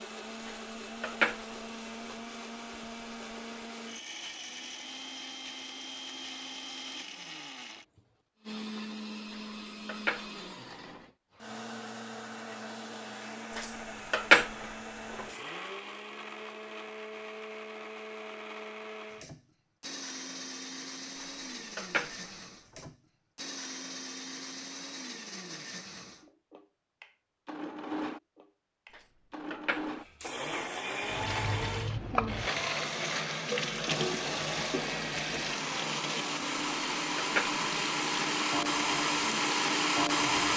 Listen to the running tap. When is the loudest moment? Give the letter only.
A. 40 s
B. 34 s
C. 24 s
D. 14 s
B.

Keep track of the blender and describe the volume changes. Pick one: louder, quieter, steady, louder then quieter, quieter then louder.
louder.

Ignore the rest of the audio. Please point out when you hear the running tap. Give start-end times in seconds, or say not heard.
31.0-40.5.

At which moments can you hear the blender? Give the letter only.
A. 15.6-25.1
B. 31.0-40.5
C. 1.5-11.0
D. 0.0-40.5
D.